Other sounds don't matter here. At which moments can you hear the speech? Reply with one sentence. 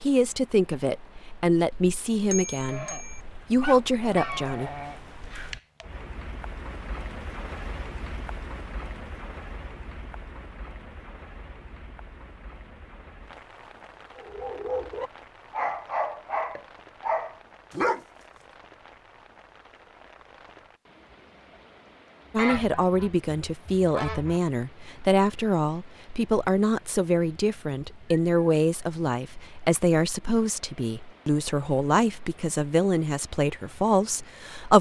You can hear the speech from 0.0 to 4.7 s and from 22.3 to 34.7 s.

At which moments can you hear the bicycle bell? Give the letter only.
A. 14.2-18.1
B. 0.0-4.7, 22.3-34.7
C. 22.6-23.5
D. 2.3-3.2
D.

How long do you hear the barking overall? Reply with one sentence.
You can hear the barking for 4 seconds altogether.